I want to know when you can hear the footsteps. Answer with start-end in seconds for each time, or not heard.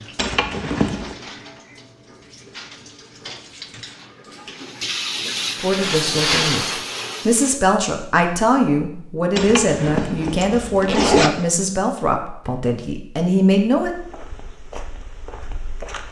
13.8-16.0.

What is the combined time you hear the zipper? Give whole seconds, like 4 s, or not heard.
3 s.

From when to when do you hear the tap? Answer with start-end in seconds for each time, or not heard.
0.0-7.6.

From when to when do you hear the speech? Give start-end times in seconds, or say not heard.
5.6-13.9.